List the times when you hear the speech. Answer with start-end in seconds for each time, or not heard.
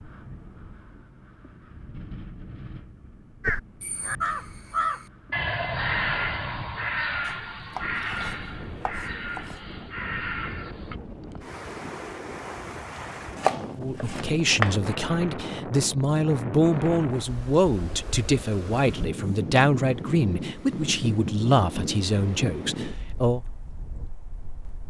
13.8-23.4.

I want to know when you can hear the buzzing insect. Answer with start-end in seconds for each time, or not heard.
not heard.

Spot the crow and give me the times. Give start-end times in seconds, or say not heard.
3.4-10.9.